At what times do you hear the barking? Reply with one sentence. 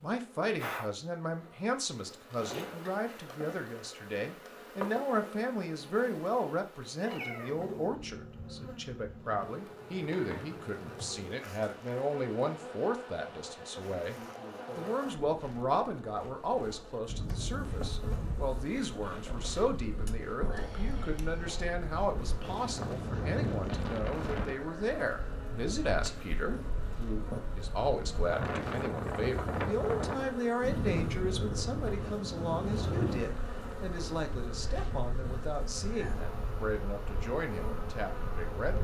You can't hear the barking here.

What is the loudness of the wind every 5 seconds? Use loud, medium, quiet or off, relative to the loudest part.
off, off, off, medium, loud, loud, loud, medium.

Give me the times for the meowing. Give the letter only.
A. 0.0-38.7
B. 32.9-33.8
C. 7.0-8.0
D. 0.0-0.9
C.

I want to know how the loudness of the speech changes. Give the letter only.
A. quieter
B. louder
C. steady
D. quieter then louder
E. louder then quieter
C.